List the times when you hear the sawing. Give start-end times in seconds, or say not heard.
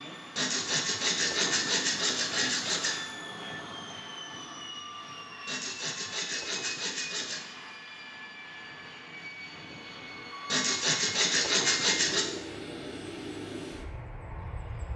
0.3-3.0, 5.5-7.5, 10.5-12.2.